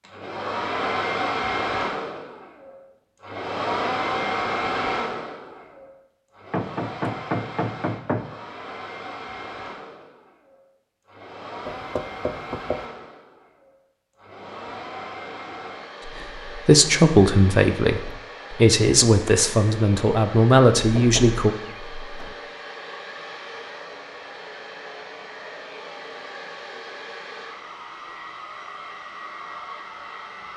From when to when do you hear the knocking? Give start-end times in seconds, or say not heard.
6.5-8.3, 11.7-12.8, 20.8-22.4.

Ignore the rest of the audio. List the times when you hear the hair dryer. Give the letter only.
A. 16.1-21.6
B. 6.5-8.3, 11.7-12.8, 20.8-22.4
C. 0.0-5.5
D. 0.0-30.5
D.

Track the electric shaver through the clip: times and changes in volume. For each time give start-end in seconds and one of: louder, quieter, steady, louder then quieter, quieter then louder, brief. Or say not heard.
not heard.